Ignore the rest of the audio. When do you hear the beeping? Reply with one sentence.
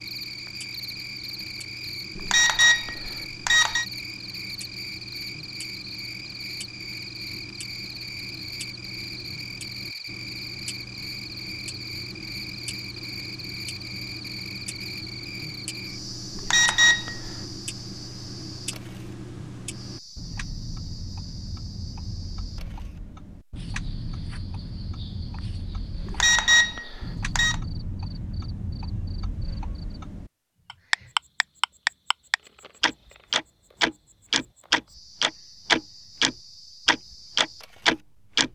The beeping can be heard from 2.1 to 3.9 s, from 16.4 to 17.3 s and from 26.1 to 27.6 s.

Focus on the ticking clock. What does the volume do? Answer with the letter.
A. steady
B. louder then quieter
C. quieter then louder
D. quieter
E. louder
E.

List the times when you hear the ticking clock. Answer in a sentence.
You can hear the ticking clock from 0.0 to 38.5 s.